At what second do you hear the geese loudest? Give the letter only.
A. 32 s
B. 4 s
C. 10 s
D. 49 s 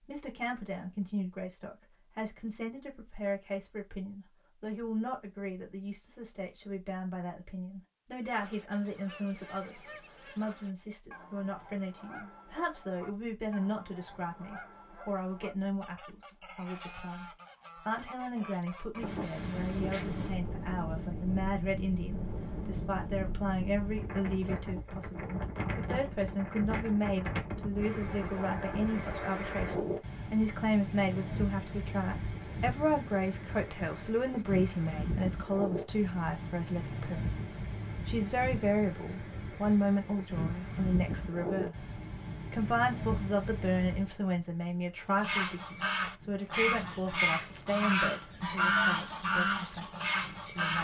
D.